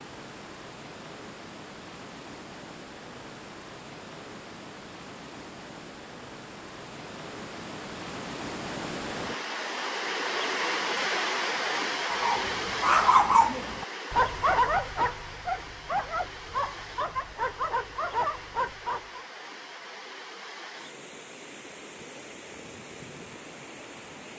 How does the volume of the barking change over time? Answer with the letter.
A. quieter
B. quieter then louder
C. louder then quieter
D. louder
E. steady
A.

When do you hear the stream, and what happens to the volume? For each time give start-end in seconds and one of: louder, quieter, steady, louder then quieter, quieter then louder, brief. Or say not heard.
0.0-24.3 louder then quieter.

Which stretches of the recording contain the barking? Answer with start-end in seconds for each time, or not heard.
12.1-19.2.